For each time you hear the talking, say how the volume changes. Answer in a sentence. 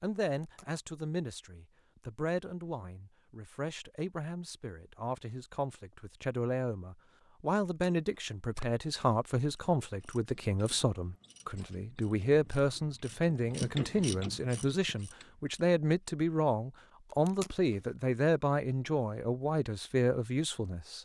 You can hear the talking from 0.0 to 20.9 s, getting louder.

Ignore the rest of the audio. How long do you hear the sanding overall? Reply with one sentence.
You can't hear the sanding here.